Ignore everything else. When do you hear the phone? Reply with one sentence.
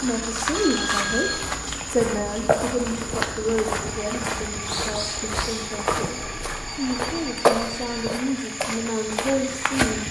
The phone can be heard from 0.5 to 1.6 s and from 6.2 to 8.2 s.